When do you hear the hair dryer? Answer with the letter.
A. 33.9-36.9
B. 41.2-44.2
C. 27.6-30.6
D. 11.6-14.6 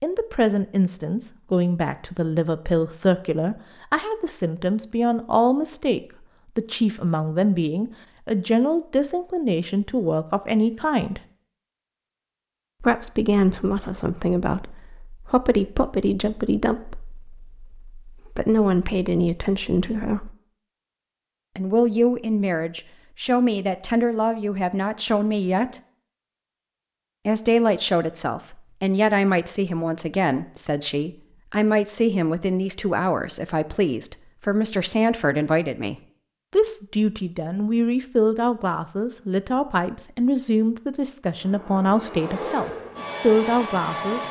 B.